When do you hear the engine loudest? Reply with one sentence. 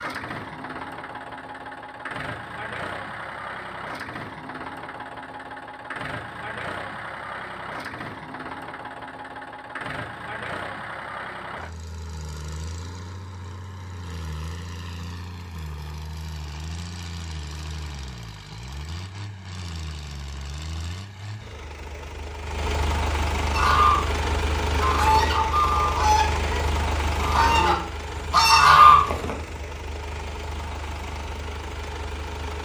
The loudest moment of the engine is at 25 seconds.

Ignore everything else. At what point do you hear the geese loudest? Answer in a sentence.
The loudest moment of the geese is at 29 seconds.